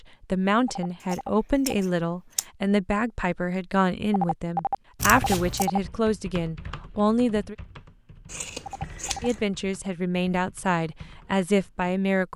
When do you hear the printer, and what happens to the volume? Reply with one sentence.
The printer can't be heard in this clip.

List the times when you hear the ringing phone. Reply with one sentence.
The ringing phone can be heard from 0.7 to 1.9 s, from 4.1 to 5.8 s and from 8.7 to 9.3 s.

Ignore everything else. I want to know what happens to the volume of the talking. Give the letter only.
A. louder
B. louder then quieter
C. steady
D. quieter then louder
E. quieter
C.